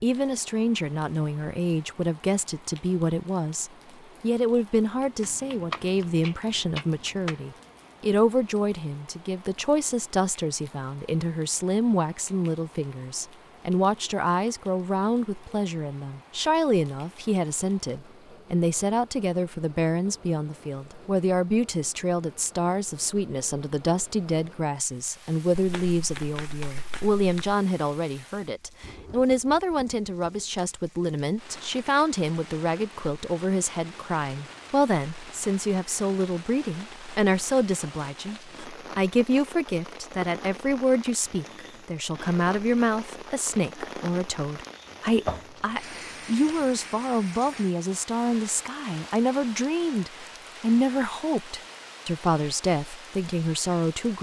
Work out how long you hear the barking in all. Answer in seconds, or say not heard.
not heard.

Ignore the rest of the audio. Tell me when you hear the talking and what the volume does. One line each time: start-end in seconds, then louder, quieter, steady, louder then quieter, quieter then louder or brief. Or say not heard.
0.0-54.1 steady.